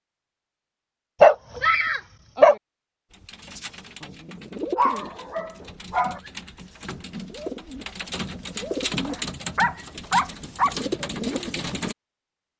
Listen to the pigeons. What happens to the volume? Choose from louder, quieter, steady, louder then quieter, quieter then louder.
quieter then louder.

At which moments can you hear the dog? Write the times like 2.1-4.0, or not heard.
1.2-2.5, 4.8-6.2, 9.1-10.8.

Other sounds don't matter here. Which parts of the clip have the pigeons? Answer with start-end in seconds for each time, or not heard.
3.1-11.9.